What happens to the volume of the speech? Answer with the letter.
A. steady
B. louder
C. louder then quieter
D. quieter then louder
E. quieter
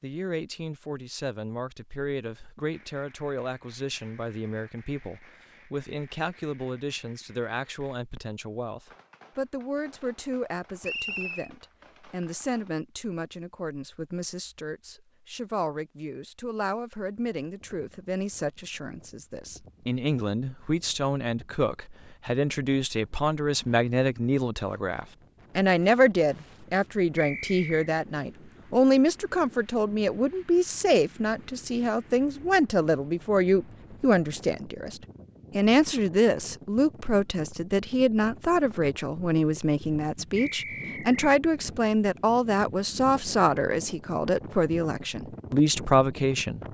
B.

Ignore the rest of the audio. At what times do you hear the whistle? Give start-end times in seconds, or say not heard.
10.8-11.5, 27.1-27.9, 40.4-41.2.